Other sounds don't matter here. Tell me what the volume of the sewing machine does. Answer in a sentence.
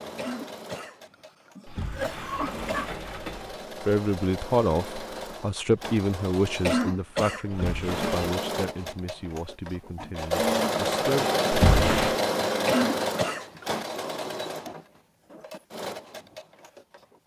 The loudness of the sewing machine goes up, then down.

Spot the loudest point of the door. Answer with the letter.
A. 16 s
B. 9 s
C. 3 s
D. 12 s
D.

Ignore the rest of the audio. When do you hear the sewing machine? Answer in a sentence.
You can hear the sewing machine from 0.0 to 17.2 s.